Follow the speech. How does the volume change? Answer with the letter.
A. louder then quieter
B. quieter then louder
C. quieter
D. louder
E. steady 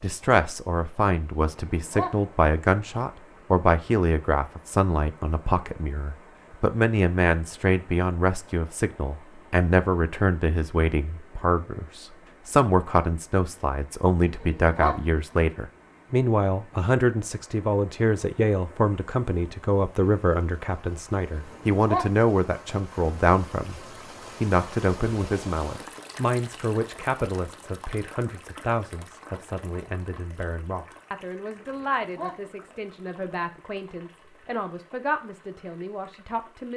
C.